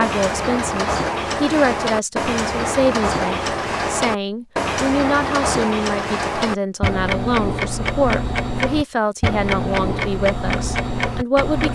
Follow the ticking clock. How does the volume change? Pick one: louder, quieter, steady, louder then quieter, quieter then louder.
steady.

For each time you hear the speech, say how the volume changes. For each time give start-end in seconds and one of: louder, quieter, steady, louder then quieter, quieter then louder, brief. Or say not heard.
0.0-11.6 steady.